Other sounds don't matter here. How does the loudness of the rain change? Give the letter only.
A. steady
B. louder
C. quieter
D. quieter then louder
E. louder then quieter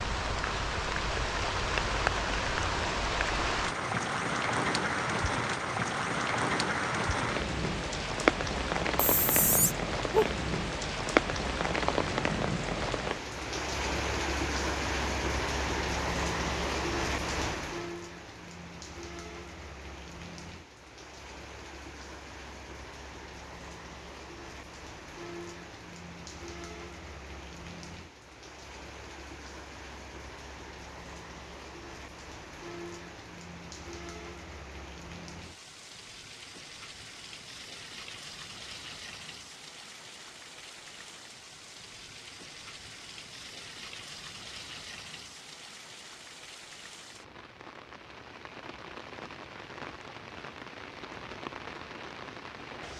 C.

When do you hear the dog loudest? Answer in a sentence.
The loudest moment of the dog is at 10 seconds.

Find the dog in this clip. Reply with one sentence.
The dog can be heard from 8.9 to 10.3 s.